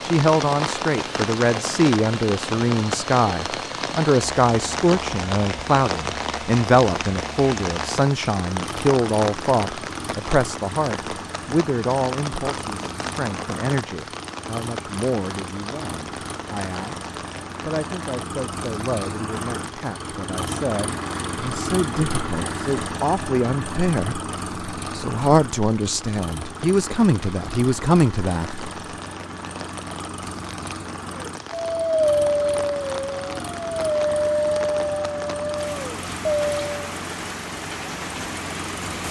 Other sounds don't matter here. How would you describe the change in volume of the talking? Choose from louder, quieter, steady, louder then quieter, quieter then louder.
quieter then louder.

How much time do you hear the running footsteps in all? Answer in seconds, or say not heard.
not heard.